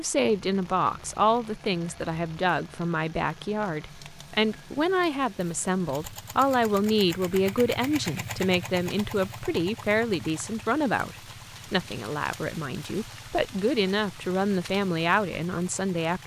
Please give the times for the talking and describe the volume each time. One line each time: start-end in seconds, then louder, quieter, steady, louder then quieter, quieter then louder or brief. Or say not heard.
0.0-16.2 steady.